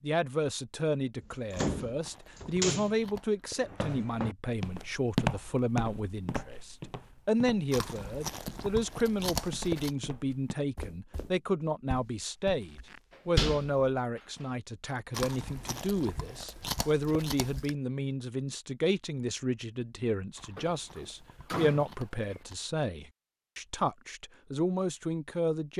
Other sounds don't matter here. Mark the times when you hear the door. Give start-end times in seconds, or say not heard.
1.2-3.0, 13.3-13.9, 20.6-22.4.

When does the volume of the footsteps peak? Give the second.
5 s.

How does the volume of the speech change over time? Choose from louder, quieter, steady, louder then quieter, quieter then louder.
steady.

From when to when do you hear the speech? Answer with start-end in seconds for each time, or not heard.
0.0-25.7.